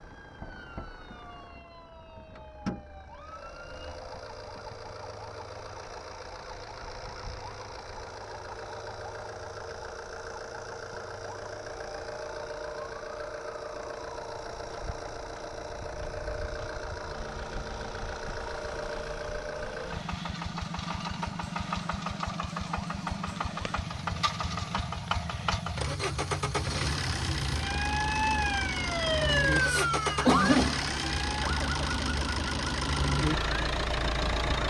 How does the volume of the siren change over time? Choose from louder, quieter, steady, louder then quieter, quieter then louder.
louder.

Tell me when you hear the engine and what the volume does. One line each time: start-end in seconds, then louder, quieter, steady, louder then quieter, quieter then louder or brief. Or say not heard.
0.0-34.6 louder.